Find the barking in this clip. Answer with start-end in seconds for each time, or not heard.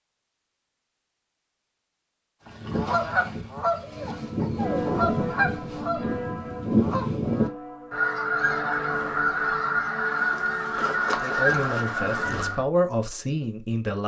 not heard.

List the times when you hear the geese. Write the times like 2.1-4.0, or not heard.
2.5-12.7.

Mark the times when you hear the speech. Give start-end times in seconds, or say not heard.
11.2-14.0.